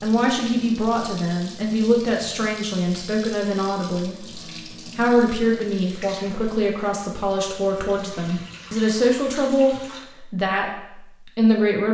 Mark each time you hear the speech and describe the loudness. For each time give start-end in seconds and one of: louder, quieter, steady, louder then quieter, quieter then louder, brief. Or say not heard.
0.0-11.8 steady.